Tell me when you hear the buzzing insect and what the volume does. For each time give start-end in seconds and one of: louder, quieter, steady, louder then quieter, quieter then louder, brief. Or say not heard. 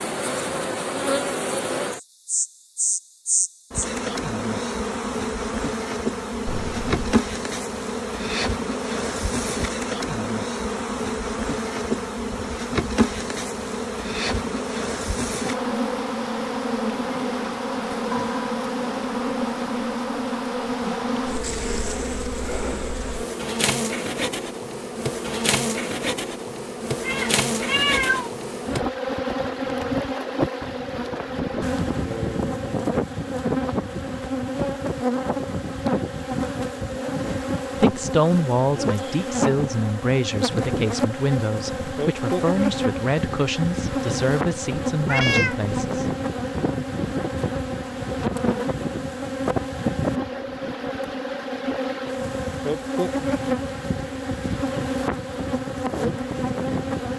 0.0-57.1 steady.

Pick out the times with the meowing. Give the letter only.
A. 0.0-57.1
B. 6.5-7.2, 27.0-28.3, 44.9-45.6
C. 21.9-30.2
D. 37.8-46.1
B.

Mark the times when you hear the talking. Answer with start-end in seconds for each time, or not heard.
37.8-46.1.